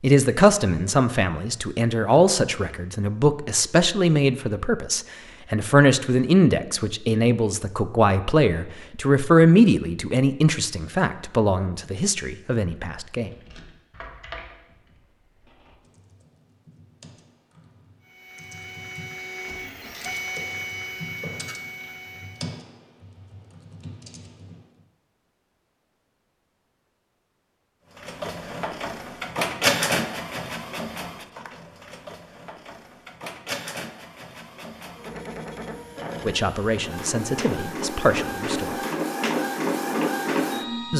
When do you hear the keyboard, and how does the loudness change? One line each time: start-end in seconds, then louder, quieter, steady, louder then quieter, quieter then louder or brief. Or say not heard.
13.2-24.6 quieter then louder.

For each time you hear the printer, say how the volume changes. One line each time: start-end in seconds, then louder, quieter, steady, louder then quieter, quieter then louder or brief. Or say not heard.
18.1-22.6 louder then quieter
27.9-40.9 quieter then louder.